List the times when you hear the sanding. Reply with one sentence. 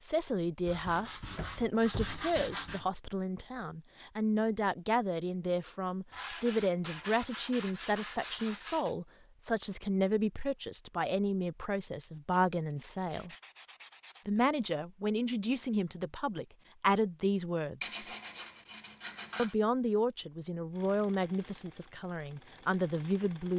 The sanding can be heard from 0.7 to 2.9 s, from 6.1 to 8.9 s, from 12.3 to 14.2 s and from 17.8 to 19.6 s.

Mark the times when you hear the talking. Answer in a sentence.
The talking can be heard from 0.0 to 13.3 s, from 14.2 to 18.0 s and from 19.4 to 23.5 s.